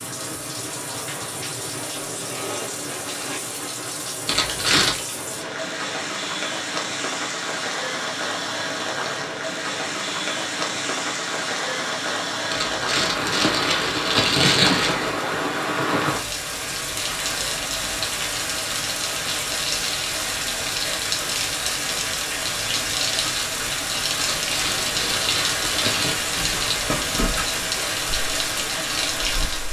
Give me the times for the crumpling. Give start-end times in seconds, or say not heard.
4.2-5.0, 12.5-15.2, 24.4-26.1.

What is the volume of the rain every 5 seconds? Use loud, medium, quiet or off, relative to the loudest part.
medium, loud, loud, loud, loud, loud.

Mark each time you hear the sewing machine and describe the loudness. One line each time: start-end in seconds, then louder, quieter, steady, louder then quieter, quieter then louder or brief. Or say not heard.
not heard.